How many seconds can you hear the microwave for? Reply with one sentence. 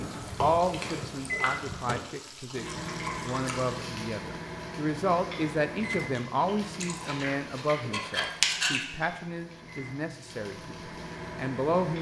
You can hear the microwave for 12 seconds altogether.